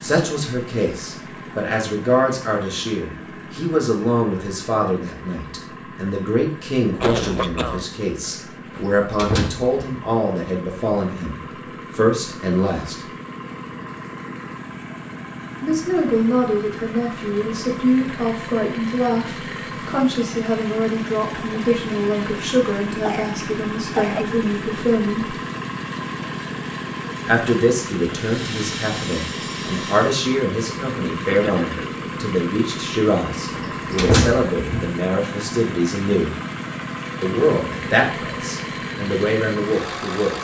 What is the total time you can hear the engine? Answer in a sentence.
You can hear the engine for 40 seconds altogether.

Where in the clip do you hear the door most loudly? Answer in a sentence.
The volume of the door peaks at 34 seconds.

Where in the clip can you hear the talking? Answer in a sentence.
You can hear the talking from 0.0 to 13.1 s, from 15.6 to 25.3 s, from 27.2 to 36.4 s and from 37.2 to 40.3 s.